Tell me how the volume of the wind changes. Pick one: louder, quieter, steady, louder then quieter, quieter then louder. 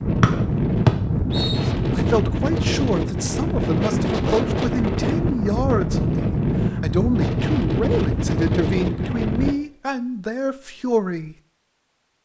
steady.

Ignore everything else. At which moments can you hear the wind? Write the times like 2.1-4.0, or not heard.
0.0-9.6.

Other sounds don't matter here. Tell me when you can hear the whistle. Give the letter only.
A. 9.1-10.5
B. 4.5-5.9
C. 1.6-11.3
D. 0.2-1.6
D.